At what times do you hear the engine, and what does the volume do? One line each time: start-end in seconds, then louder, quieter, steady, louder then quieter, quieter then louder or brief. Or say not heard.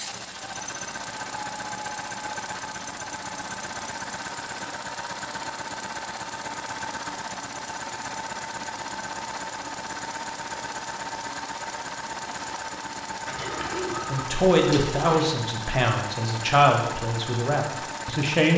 0.0-18.5 steady.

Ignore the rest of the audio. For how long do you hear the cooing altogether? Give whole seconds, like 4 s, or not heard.
2 s.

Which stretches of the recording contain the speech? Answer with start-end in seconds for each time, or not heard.
14.1-18.5.